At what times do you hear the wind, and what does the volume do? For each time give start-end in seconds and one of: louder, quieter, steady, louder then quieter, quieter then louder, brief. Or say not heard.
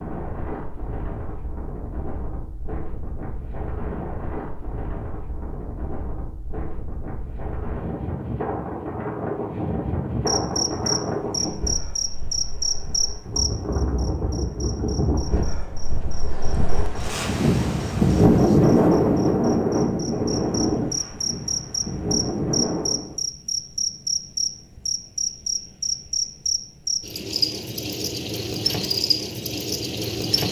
0.0-23.2 louder.